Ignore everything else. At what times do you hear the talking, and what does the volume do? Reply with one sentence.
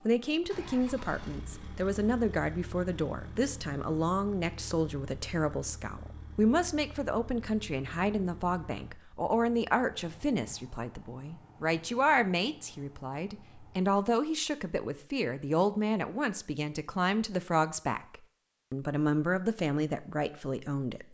You can hear the talking from 0.1 to 21.0 s, at a steady volume.